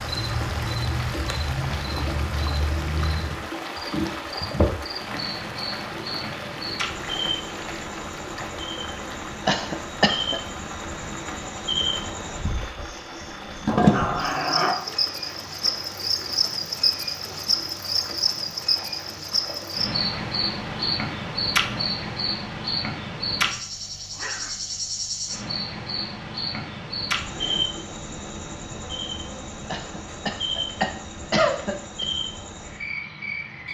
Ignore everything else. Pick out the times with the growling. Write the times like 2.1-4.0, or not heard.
13.7-14.9, 24.1-24.8.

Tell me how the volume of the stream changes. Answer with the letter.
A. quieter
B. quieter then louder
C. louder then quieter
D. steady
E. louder
A.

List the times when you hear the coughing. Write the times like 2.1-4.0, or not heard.
9.4-10.4, 29.7-32.0.